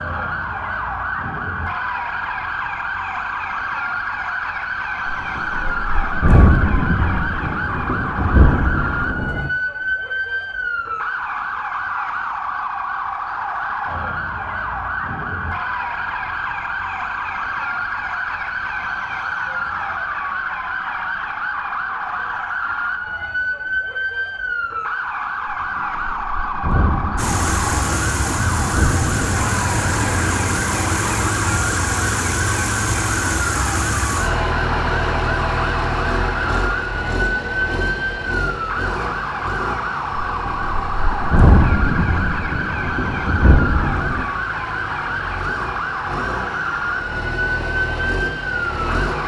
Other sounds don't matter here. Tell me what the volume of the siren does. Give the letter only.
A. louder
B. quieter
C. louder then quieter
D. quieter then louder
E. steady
E.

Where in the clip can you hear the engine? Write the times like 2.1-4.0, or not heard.
27.1-49.2.